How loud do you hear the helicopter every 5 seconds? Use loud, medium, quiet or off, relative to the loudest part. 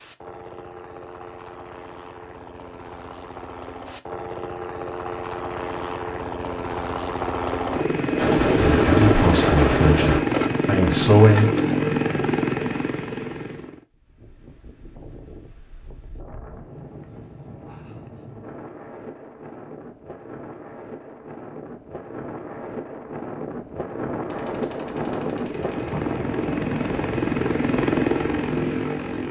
quiet, loud, loud, off, off, loud.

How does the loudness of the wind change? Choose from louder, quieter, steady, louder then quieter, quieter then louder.
louder.